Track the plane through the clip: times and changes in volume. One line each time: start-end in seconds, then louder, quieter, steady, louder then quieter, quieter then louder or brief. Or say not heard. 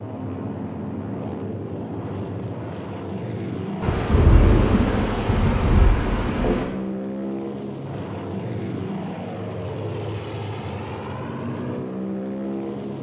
0.0-12.9 steady.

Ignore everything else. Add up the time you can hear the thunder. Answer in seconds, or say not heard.
3 s.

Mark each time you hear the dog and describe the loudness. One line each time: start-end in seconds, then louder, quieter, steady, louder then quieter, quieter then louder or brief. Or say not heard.
not heard.